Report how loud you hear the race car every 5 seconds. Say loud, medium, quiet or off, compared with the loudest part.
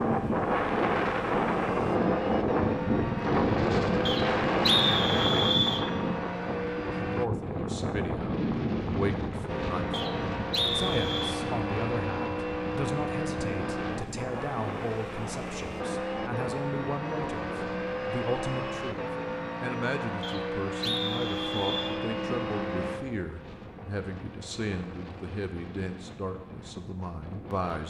loud, loud, loud, loud, loud, off.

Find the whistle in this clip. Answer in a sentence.
The whistle can be heard from 4.0 to 5.8 s, from 9.9 to 11.3 s and from 20.2 to 22.0 s.